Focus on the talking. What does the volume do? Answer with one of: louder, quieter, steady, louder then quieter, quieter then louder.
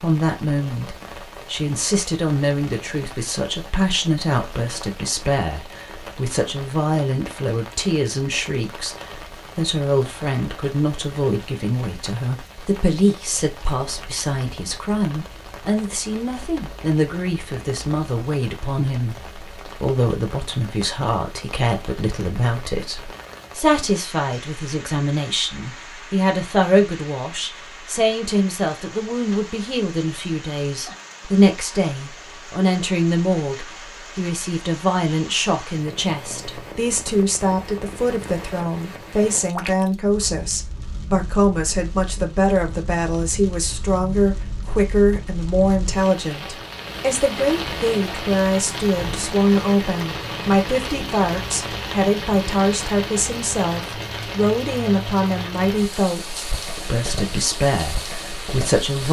steady.